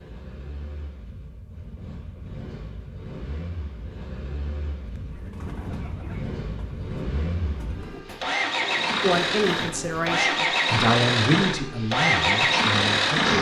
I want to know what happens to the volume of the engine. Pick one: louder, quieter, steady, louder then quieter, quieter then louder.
louder.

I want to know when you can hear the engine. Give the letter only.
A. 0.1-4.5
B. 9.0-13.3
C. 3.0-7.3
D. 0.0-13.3
D.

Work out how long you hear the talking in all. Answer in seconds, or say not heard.
4 s.